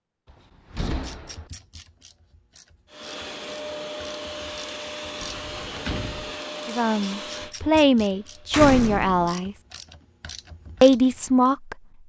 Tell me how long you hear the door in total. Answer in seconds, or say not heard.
3 s.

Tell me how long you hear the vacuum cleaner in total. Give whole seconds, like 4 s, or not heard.
6 s.